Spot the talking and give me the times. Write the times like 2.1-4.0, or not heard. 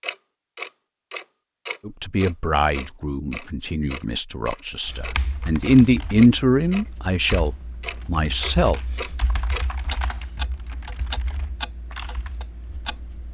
1.9-8.8.